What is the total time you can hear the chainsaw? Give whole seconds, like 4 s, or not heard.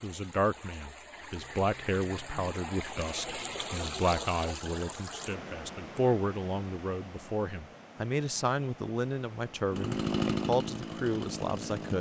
2 s.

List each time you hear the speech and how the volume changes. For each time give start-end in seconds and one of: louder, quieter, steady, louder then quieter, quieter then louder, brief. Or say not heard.
0.0-11.9 steady.